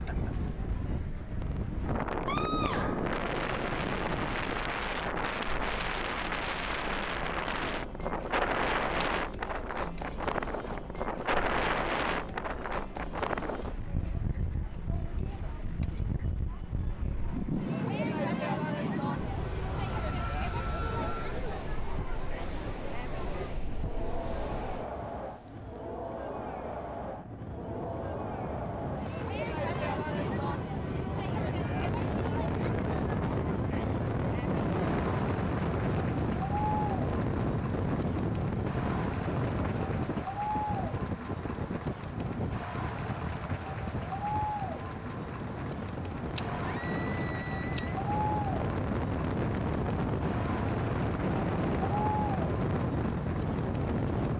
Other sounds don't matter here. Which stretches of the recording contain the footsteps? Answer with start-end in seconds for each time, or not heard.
not heard.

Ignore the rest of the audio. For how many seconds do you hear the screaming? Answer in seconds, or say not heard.
4 s.